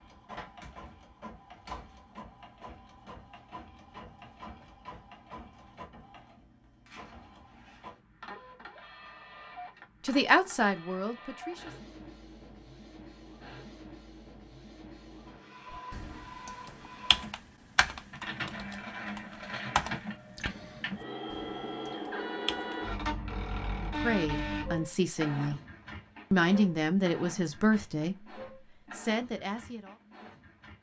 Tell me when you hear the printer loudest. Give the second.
24 s.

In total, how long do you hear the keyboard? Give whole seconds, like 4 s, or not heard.
7 s.